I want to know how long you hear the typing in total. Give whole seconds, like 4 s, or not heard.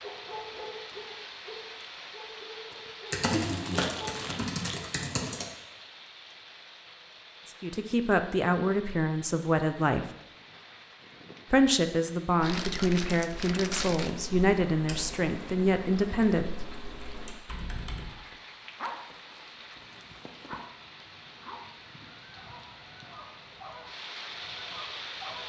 8 s.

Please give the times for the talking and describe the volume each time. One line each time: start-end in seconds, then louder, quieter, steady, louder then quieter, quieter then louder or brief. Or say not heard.
7.5-10.1 brief
11.5-16.6 steady.